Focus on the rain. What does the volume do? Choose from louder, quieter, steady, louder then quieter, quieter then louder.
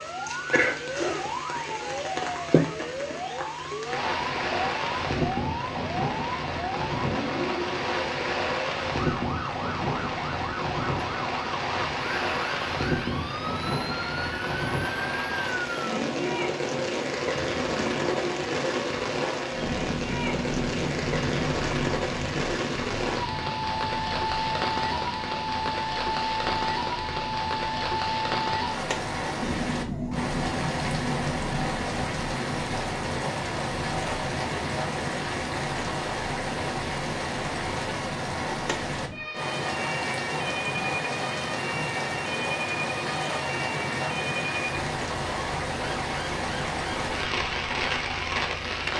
steady.